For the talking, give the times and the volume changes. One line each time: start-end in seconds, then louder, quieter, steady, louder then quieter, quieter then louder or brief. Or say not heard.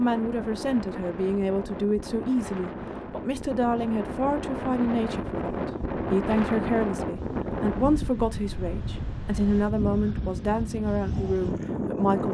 0.0-12.2 steady.